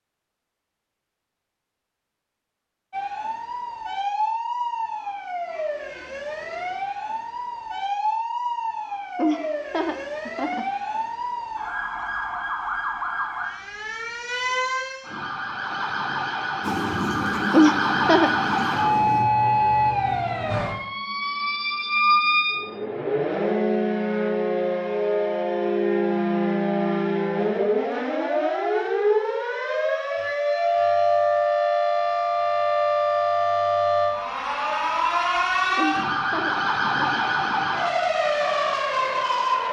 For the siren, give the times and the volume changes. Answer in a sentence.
You can hear the siren from 2.9 to 39.6 s, getting louder.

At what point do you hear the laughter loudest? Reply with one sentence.
The volume of the laughter peaks at 18 seconds.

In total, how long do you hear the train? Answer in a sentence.
You can hear the train for 3 seconds altogether.